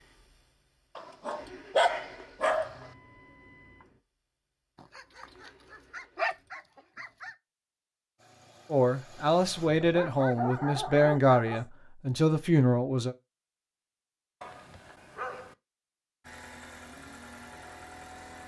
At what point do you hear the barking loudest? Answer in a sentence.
The loudest moment of the barking is at 2 seconds.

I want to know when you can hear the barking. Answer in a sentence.
You can hear the barking from 0.9 to 2.9 s, from 4.8 to 7.3 s, from 9.8 to 11.7 s and from 14.4 to 15.6 s.